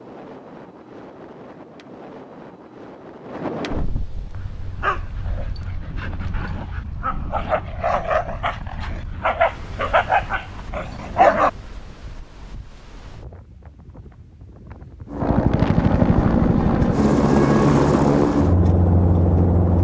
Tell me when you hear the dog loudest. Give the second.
11 s.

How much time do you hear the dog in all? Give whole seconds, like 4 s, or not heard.
7 s.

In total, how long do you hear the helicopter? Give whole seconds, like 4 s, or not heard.
5 s.